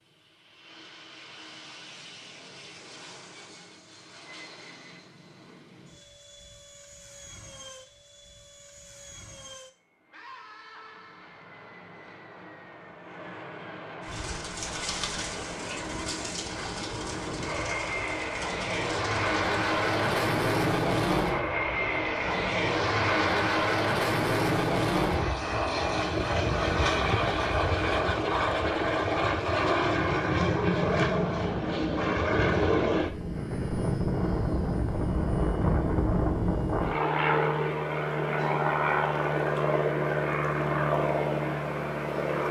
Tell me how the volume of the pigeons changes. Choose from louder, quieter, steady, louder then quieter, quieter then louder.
quieter.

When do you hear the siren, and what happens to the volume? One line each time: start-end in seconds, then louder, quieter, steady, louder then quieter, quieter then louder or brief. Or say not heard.
not heard.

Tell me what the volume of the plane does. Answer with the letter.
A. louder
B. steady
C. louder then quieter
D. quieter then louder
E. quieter
A.